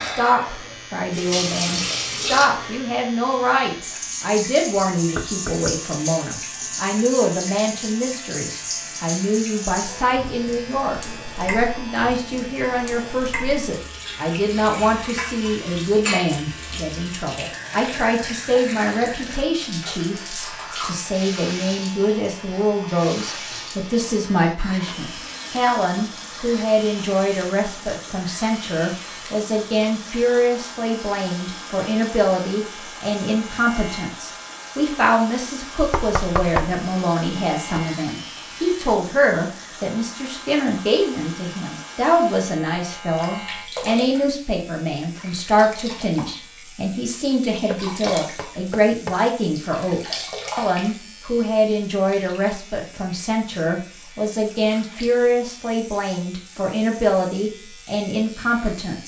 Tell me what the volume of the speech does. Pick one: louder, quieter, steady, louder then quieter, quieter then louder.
steady.